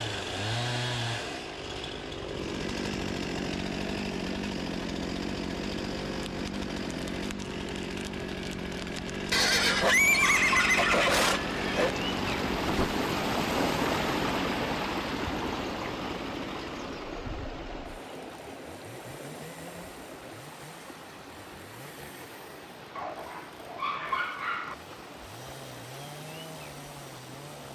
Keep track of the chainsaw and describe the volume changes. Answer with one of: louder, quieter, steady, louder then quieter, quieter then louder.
quieter.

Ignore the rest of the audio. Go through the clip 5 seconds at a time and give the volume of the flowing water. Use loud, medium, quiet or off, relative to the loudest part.
quiet, quiet, loud, medium, quiet, quiet.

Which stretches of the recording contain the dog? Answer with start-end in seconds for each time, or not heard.
9.3-11.1, 22.9-24.8.